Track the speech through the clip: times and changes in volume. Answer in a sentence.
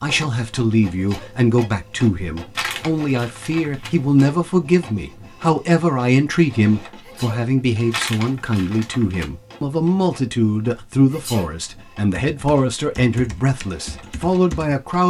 You can hear the speech from 0.0 to 15.0 s, at a steady volume.